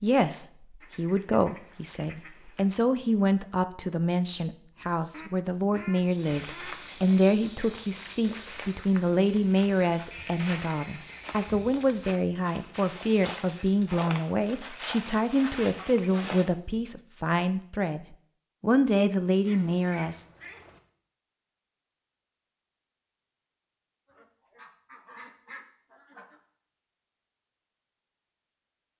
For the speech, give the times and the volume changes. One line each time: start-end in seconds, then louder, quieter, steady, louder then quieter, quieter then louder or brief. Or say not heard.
0.0-20.4 steady.